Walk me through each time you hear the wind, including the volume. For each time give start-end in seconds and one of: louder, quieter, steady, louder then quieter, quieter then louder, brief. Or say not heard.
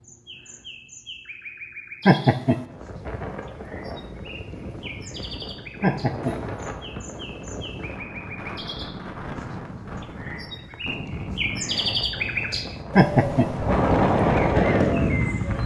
2.5-15.6 louder.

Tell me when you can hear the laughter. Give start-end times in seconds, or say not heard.
2.0-2.6, 5.8-6.3, 12.9-13.4.